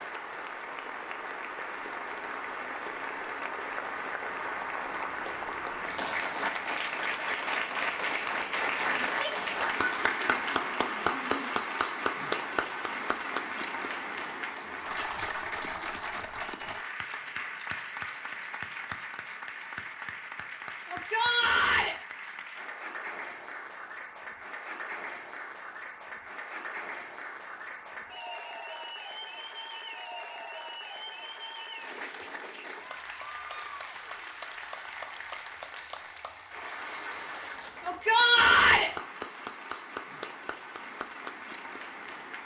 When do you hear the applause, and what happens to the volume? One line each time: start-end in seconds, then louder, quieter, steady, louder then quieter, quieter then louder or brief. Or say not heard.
0.0-42.4 quieter.